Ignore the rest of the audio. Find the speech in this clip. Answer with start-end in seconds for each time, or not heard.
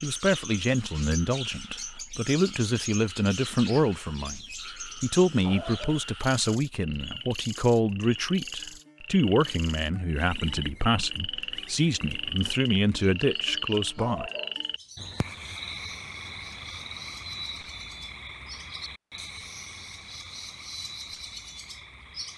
0.0-14.3.